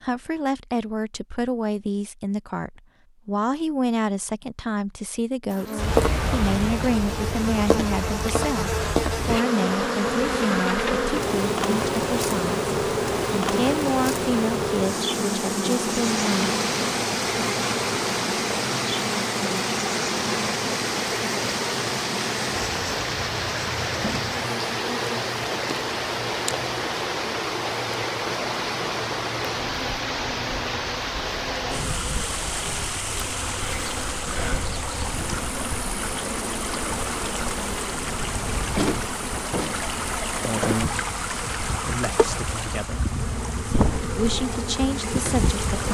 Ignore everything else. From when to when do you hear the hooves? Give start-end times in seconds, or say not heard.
not heard.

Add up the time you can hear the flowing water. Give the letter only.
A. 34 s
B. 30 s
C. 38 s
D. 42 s
B.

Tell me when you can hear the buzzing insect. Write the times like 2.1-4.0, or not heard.
5.5-45.9.